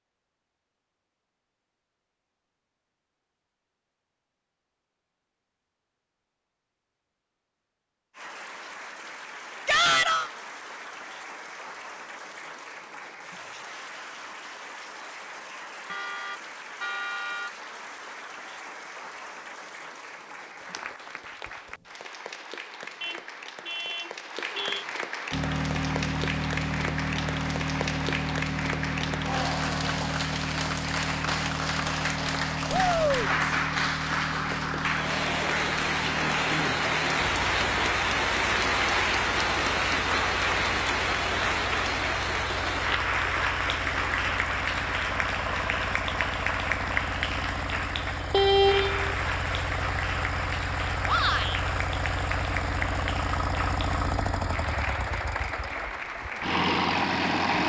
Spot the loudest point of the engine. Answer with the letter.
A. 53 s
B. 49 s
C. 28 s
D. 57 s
D.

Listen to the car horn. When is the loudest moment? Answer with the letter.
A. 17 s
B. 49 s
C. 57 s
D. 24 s
B.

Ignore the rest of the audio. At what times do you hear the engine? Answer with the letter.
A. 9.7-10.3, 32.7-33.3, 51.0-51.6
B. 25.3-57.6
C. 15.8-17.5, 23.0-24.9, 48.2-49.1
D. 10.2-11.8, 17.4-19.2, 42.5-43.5
B.